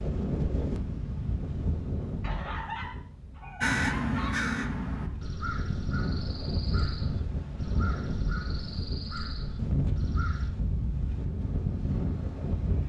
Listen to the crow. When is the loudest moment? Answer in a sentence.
The loudest moment of the crow is at 4 seconds.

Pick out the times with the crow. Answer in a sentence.
The crow can be heard from 3.6 to 10.5 s.